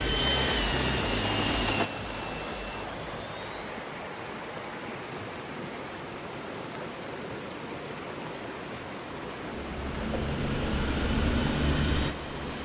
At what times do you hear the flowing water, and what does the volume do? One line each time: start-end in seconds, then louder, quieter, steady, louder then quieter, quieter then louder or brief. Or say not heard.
0.0-12.6 steady.